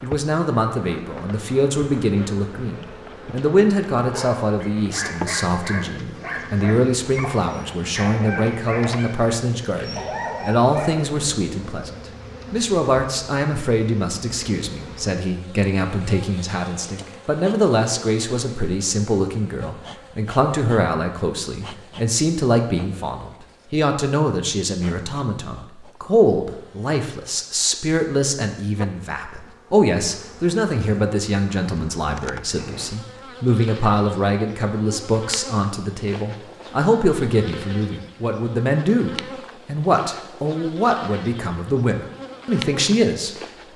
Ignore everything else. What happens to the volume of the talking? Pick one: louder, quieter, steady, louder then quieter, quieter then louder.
steady.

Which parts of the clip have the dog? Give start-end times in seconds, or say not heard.
4.0-11.1.